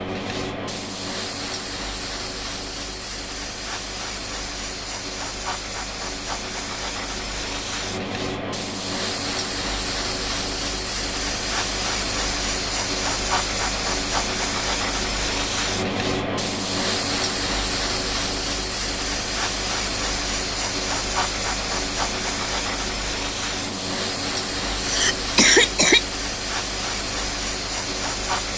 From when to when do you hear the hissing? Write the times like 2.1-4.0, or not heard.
0.0-28.5.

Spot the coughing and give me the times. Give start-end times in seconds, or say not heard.
24.8-26.1.